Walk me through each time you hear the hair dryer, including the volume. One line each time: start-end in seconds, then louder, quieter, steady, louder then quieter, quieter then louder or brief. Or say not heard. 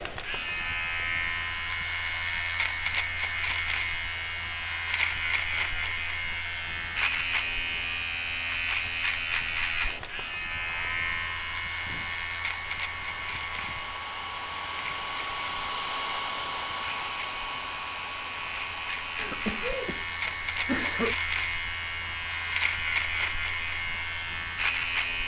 0.0-25.2 louder then quieter.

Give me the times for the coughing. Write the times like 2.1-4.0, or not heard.
19.1-21.1.